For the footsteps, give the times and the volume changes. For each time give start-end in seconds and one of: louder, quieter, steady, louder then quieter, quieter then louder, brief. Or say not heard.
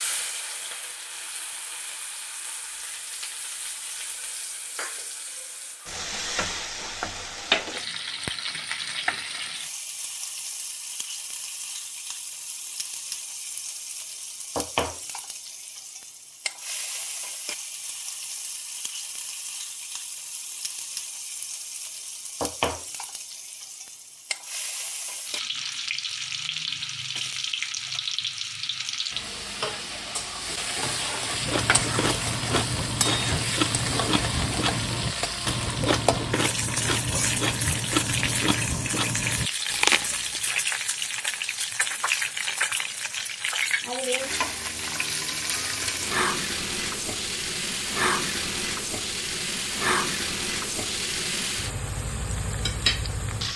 not heard.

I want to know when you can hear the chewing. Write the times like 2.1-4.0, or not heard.
31.2-40.4.